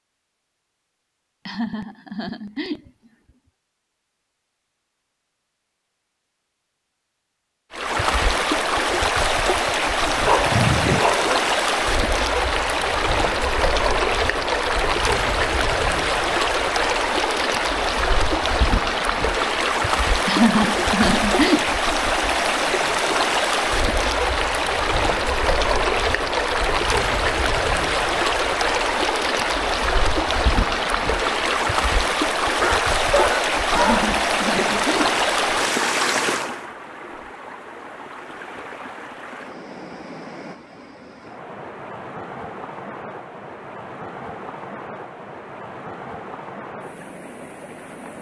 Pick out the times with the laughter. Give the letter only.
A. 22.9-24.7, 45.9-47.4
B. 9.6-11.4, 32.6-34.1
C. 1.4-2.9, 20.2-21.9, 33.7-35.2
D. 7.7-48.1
C.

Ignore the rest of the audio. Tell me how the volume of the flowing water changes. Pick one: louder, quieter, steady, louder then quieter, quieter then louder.
quieter.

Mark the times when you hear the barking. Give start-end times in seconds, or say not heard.
9.6-11.4, 32.6-34.1.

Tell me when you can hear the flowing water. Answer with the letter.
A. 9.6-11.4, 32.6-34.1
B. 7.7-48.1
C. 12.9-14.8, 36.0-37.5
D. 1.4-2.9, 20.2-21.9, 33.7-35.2
B.